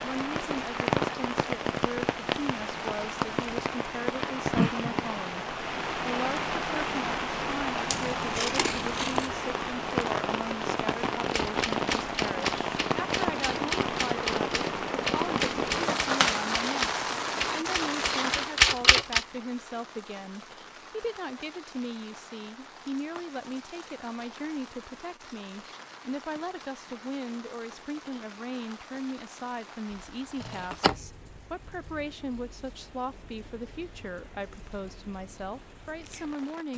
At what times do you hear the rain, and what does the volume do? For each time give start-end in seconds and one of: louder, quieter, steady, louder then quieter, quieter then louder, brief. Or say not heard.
0.0-36.7 quieter.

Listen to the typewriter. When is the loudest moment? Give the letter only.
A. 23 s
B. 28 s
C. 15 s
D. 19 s
D.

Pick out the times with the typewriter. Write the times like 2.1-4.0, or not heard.
11.3-19.2.